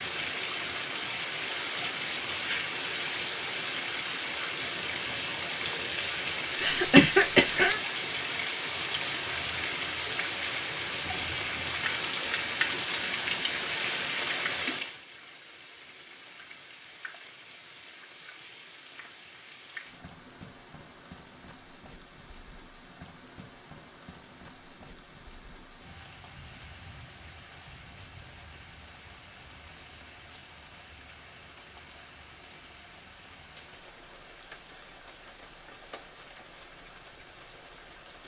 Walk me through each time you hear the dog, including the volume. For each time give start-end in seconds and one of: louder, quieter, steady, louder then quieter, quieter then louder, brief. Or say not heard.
not heard.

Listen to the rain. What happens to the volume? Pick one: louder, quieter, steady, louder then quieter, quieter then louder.
quieter.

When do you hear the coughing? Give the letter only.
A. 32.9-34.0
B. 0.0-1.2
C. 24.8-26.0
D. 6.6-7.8
D.